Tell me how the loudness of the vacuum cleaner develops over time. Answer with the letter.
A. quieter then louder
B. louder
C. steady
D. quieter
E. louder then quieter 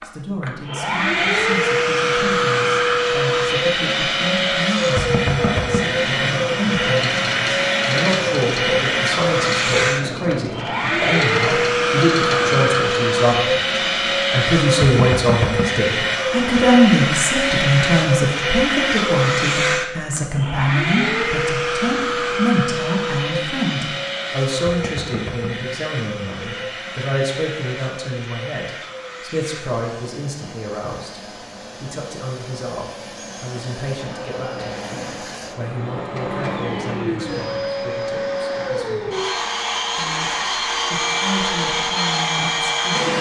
A.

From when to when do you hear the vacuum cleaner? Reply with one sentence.
The vacuum cleaner can be heard from 0.0 to 43.1 s.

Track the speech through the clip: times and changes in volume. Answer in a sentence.
The speech can be heard from 0.0 to 43.1 s, getting louder then quieter.